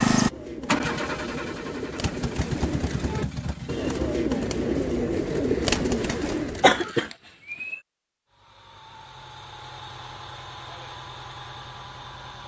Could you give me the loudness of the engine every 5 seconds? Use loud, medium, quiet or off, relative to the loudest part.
loud, quiet, quiet.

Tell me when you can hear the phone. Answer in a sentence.
The phone can't be heard in this clip.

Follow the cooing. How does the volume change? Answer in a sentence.
The loudness of the cooing goes up.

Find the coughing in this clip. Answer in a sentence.
You can hear the coughing from 6.0 to 7.8 s.